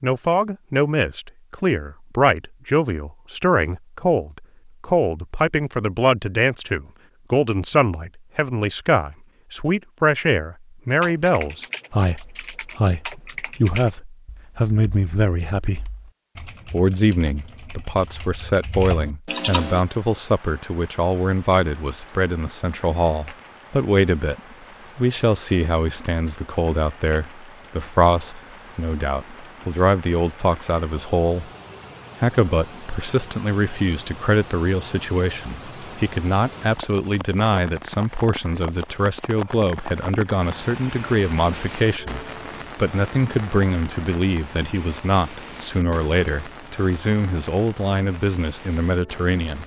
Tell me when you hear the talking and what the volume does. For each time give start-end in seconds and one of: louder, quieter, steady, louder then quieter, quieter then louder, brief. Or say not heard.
0.0-15.9 steady
16.7-31.5 steady
32.2-49.6 steady.